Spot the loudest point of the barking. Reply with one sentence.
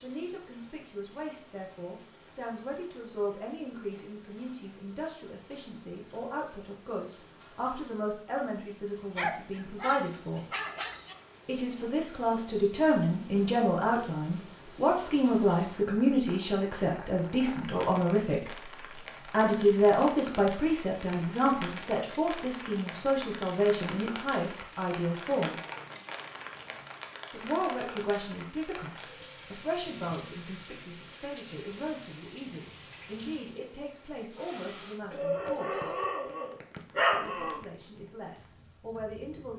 The volume of the barking peaks at 37 seconds.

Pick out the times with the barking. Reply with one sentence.
You can hear the barking from 9.2 to 11.2 s and from 35.1 to 37.6 s.